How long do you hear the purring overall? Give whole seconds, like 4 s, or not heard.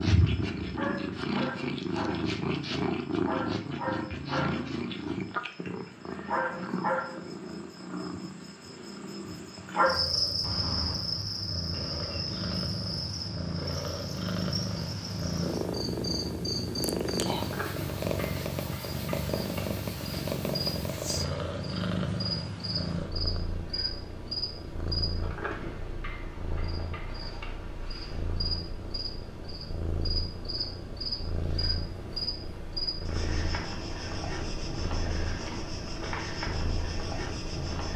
38 s.